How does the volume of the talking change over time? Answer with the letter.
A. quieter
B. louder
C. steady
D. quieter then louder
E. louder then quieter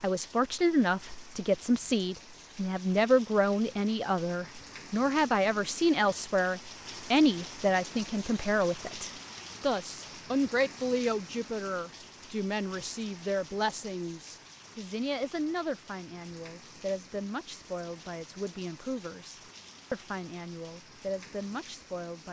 A.